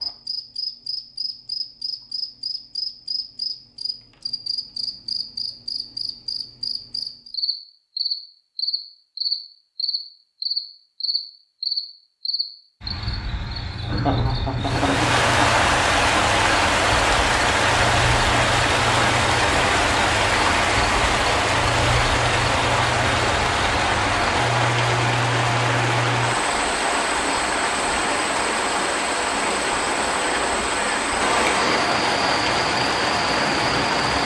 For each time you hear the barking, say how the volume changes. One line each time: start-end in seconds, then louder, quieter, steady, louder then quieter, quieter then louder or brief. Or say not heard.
not heard.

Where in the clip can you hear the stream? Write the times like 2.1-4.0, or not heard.
14.6-34.2.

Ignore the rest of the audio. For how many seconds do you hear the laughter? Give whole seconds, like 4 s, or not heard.
2 s.